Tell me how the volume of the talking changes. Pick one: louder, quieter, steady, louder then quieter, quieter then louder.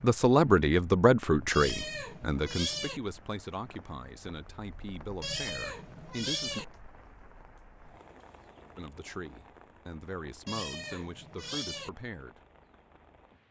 quieter.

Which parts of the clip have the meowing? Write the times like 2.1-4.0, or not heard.
1.5-3.0, 5.2-6.7, 10.4-11.9.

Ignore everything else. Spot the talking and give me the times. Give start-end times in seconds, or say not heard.
0.0-6.7, 8.8-12.4.